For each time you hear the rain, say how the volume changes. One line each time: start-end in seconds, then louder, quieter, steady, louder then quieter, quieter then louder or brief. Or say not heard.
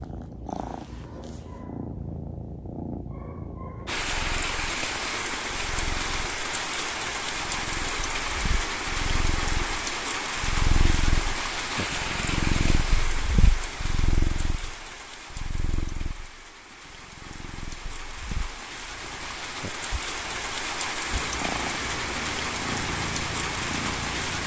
3.9-24.4 quieter then louder.